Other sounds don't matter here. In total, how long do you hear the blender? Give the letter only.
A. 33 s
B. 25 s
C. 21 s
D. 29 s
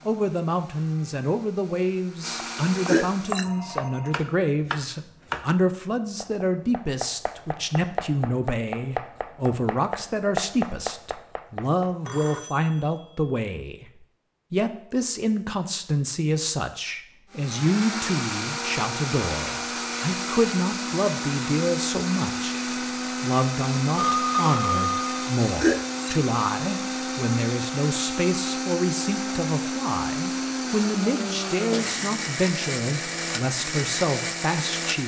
C.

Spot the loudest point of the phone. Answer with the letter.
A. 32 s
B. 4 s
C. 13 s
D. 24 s
D.